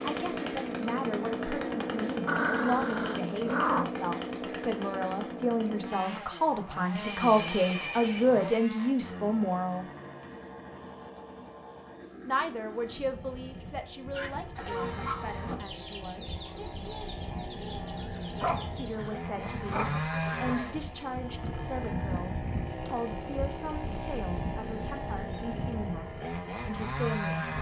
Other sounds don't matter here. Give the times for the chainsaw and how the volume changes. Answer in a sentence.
The chainsaw can be heard from 0.0 to 27.5 s, getting quieter then louder.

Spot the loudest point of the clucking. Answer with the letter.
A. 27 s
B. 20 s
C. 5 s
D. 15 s
D.